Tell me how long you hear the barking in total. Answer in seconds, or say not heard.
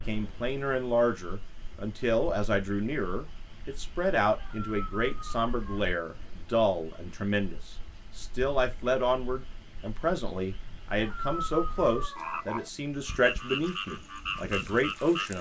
3 s.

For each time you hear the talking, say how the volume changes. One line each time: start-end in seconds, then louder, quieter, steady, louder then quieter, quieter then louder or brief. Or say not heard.
0.1-15.3 steady.